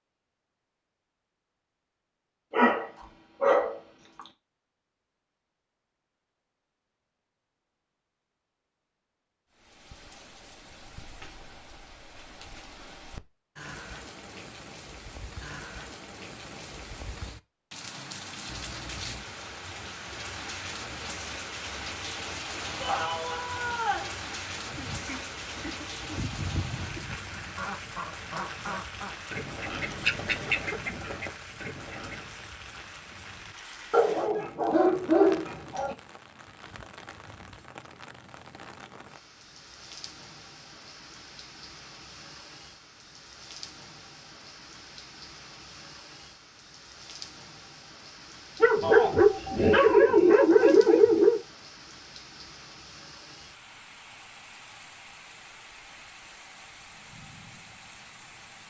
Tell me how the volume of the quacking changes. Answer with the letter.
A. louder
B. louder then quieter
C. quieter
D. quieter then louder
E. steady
B.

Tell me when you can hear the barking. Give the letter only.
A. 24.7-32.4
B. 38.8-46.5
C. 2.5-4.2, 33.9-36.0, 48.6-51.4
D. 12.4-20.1
C.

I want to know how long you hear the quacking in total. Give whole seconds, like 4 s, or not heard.
8 s.